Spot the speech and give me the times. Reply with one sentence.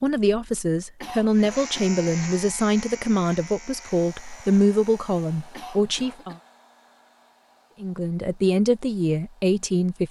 You can hear the speech from 0.0 to 6.3 s and from 7.8 to 10.0 s.